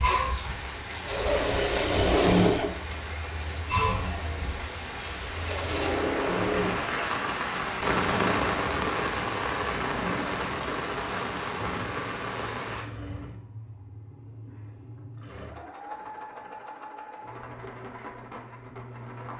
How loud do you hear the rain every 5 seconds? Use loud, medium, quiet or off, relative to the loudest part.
medium, loud, loud, off.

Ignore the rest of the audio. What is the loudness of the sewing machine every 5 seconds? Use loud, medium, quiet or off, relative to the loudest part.
loud, medium, quiet, quiet.